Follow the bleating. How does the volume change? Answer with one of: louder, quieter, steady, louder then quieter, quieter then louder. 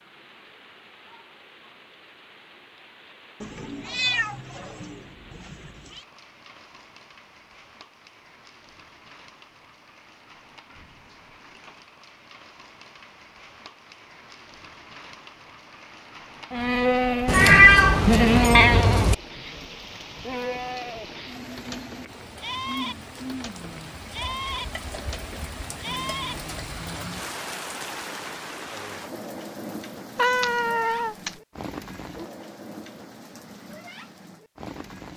quieter.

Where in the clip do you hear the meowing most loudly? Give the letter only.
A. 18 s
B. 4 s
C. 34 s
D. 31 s
A.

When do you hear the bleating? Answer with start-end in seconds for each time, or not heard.
16.5-27.3.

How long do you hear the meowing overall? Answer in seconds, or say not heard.
6 s.